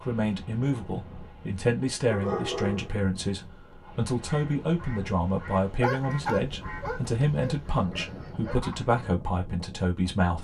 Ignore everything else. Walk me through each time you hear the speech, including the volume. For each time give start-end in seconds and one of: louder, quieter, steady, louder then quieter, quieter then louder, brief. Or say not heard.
0.0-10.3 steady.